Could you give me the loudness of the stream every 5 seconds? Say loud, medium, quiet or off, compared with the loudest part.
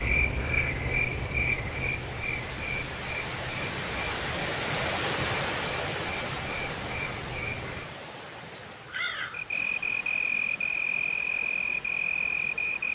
loud, loud, medium.